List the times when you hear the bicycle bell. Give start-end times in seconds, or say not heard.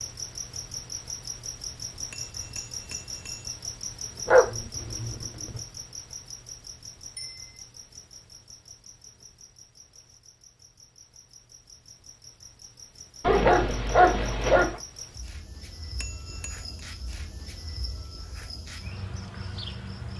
2.1-3.5, 7.2-7.6, 15.9-16.9.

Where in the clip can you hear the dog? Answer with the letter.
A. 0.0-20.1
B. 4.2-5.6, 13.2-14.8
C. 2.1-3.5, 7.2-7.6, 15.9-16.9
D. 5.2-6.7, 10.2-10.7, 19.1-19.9
B.